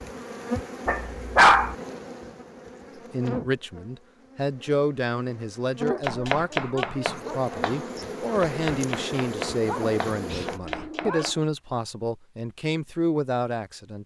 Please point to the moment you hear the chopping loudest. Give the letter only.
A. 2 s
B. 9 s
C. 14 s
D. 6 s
D.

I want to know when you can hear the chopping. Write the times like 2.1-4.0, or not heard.
6.0-11.3.